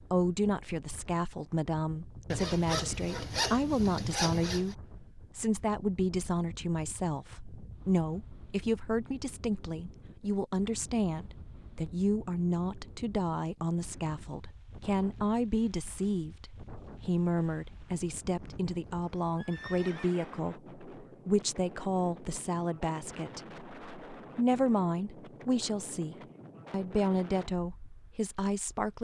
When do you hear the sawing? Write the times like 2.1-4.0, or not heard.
2.3-4.8.